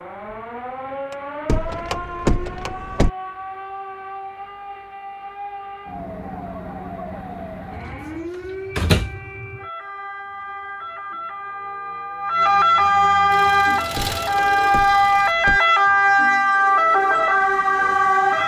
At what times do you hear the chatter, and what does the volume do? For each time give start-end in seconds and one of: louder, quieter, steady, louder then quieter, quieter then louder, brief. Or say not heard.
not heard.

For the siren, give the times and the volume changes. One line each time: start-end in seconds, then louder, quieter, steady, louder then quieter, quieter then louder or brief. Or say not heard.
0.0-18.4 louder.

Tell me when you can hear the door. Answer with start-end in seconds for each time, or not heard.
1.1-3.1, 8.8-9.2, 13.9-15.6.